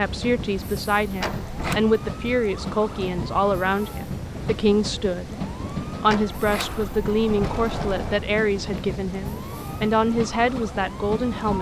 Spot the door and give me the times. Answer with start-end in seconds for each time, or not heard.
1.2-1.8, 6.0-8.2.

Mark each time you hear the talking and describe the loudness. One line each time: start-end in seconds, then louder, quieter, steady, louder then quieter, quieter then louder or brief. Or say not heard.
0.0-11.5 steady.